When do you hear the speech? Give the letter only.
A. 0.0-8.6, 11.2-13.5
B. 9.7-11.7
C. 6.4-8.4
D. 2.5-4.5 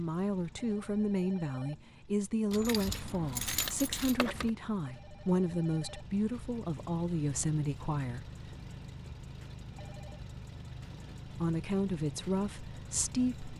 A.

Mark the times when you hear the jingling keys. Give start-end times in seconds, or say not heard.
2.5-4.5.